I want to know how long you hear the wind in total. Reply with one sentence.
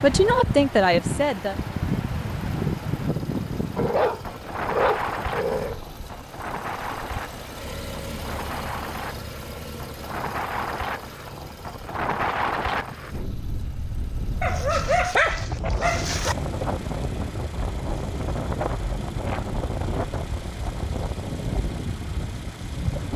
You can hear the wind for 23 seconds altogether.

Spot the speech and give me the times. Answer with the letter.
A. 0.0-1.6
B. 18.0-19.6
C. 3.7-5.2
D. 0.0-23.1
A.